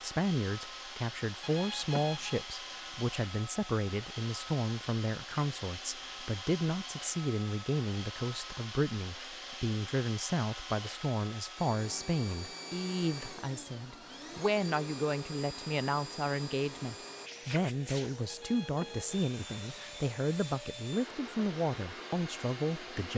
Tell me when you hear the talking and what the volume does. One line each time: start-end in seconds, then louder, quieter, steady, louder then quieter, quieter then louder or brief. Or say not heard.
0.0-23.1 steady.